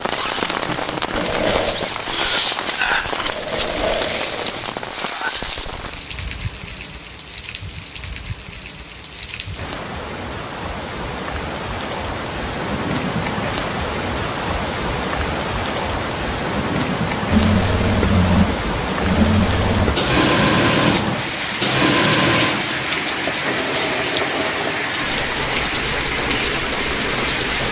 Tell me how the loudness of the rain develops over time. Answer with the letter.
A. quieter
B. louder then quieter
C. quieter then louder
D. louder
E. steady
C.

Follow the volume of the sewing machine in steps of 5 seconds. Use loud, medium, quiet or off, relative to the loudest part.
medium, off, off, loud, loud, medium.